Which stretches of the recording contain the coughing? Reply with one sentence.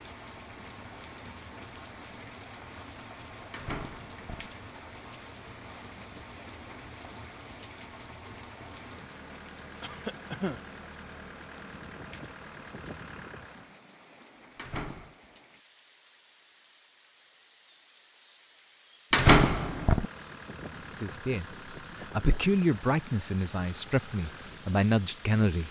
The coughing can be heard from 9.8 to 10.6 s.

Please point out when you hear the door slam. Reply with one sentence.
You can hear the door slam from 3.5 to 4.5 s, from 14.6 to 15.2 s and from 19.1 to 20.1 s.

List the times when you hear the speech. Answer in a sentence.
You can hear the speech from 21.0 to 25.6 s.